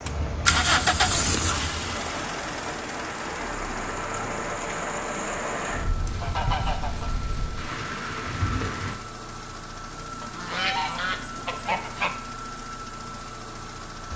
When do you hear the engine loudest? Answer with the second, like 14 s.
1 s.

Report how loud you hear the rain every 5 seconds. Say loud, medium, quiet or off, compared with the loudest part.
loud, loud, off.